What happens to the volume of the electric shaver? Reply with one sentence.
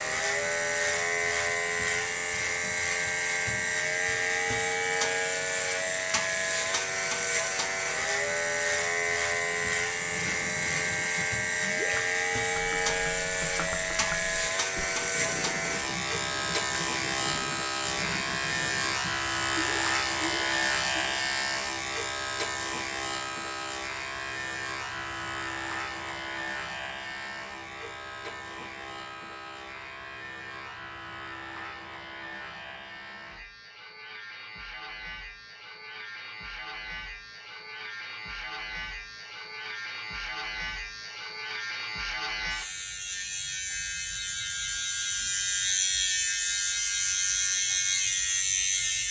The volume of the electric shaver goes down, then up.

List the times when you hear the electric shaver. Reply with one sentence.
You can hear the electric shaver from 0.0 to 49.0 s.